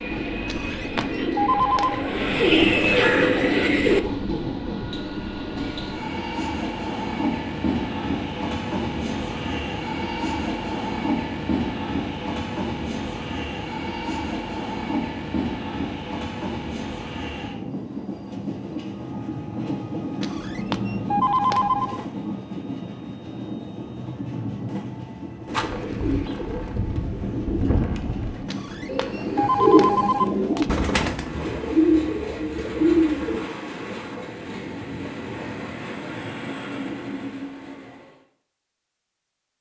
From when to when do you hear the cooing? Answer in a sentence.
The cooing can be heard from 0.0 to 4.0 s and from 25.4 to 33.5 s.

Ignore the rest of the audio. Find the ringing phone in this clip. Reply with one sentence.
The ringing phone can be heard from 0.5 to 2.0 s, from 20.2 to 22.0 s and from 28.4 to 30.7 s.